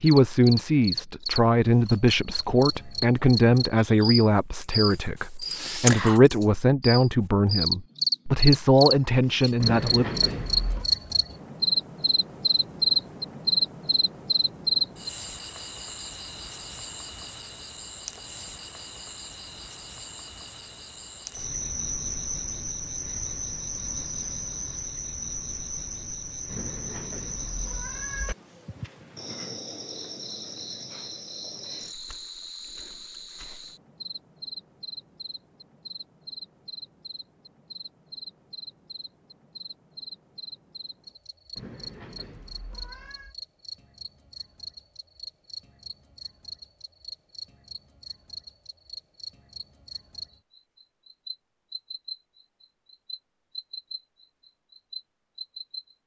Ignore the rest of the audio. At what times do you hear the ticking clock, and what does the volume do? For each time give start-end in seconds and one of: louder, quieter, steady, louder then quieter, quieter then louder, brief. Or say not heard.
not heard.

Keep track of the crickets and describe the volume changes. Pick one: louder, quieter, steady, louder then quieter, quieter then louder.
quieter.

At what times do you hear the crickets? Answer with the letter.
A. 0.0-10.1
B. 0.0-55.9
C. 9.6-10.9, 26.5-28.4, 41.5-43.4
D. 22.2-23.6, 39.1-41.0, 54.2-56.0
B.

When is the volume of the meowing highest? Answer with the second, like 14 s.
10 s.